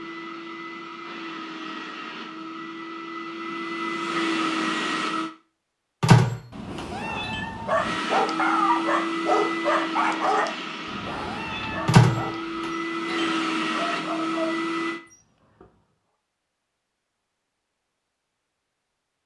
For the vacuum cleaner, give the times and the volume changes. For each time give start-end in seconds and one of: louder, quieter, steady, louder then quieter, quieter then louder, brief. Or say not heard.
0.0-5.3 louder
7.8-15.0 quieter then louder.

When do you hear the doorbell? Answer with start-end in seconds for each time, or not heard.
6.0-7.4, 11.8-13.3.